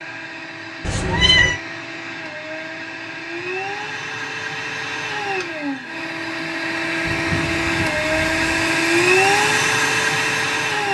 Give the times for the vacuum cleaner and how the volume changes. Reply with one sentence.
You can hear the vacuum cleaner from 0.0 to 10.8 s, getting louder.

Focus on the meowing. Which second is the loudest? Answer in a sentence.
The loudest moment of the meowing is at 1 second.